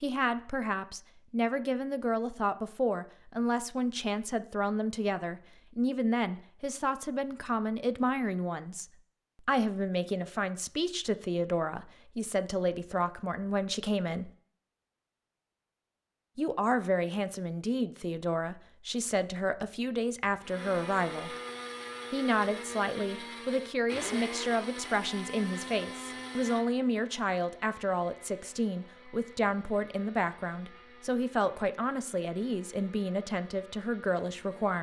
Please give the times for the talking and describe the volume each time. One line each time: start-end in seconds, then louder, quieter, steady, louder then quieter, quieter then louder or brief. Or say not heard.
0.0-14.3 steady
16.4-21.4 steady
22.1-34.7 steady.